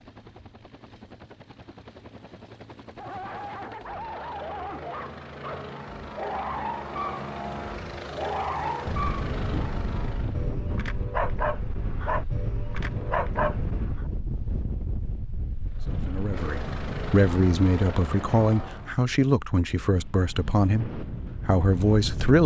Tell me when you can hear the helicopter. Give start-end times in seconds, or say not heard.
0.0-10.6, 15.7-18.9.